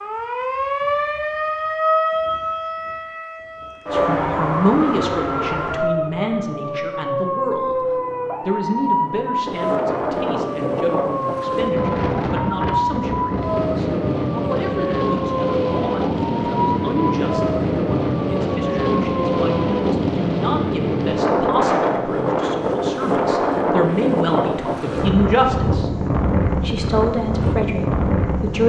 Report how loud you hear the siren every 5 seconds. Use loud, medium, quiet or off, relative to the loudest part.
loud, loud, loud, loud, off, off.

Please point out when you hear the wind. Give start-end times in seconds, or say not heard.
9.4-28.6.